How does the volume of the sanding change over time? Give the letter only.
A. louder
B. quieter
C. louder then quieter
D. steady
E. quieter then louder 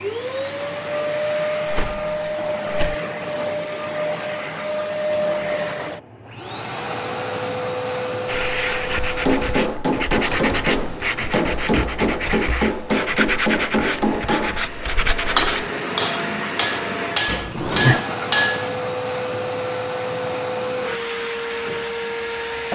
D.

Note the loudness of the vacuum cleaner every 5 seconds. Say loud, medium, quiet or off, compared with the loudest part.
loud, loud, medium, loud, loud.